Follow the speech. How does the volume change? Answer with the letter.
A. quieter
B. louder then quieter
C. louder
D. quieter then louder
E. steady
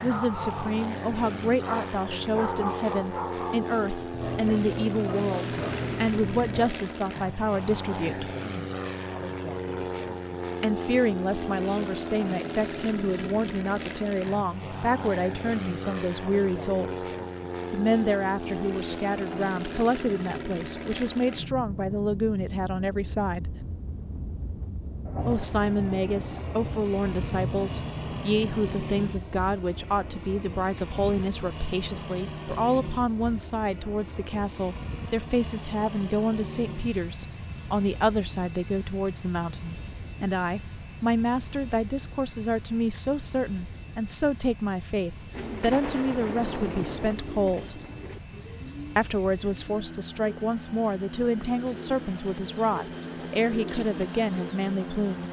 E.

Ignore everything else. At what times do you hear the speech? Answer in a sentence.
You can hear the speech from 0.0 to 8.3 s, from 10.6 to 17.0 s, from 17.7 to 23.6 s, from 25.2 to 47.8 s and from 49.0 to 55.2 s.